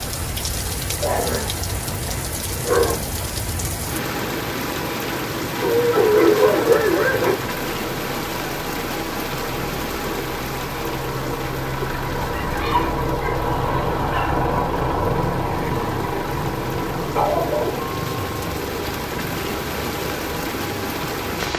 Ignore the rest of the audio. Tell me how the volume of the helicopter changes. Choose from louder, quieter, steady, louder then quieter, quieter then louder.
louder then quieter.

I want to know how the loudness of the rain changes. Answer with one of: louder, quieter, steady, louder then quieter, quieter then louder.
quieter then louder.